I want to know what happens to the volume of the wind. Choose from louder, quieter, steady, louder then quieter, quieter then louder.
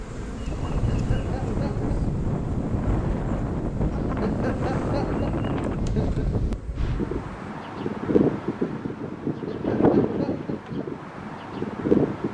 steady.